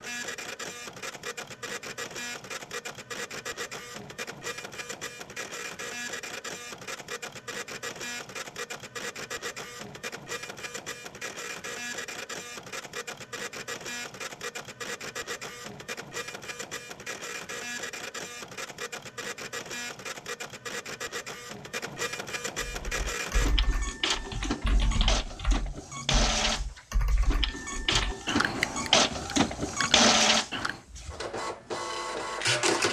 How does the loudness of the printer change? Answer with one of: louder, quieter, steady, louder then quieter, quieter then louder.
louder.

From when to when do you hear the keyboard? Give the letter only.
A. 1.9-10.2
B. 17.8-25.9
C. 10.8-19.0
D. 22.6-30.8
D.